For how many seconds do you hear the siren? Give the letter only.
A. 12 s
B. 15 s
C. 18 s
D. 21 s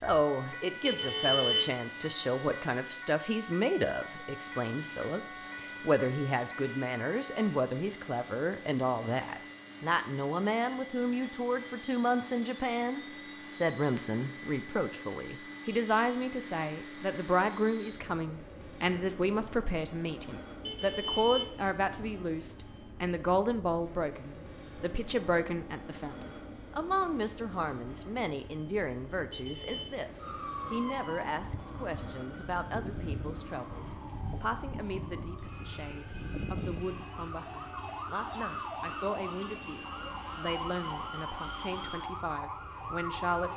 D.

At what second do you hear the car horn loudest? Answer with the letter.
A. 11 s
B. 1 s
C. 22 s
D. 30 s
B.